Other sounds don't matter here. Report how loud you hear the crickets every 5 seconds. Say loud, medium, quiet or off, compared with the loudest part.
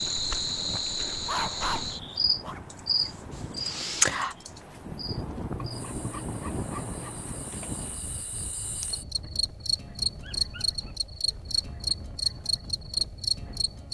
loud, medium, loud.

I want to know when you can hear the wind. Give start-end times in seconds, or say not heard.
0.0-13.8.